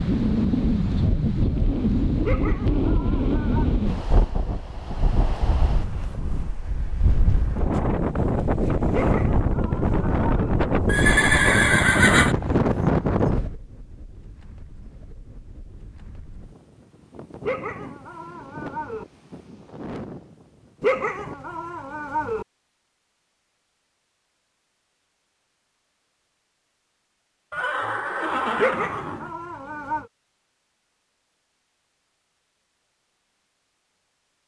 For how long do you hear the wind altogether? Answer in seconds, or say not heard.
21 s.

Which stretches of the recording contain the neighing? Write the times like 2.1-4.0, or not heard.
10.8-12.3, 27.5-29.3.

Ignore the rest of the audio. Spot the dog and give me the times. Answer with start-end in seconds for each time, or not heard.
2.2-3.8, 8.9-10.6, 17.4-19.1, 20.8-22.4, 28.6-30.1.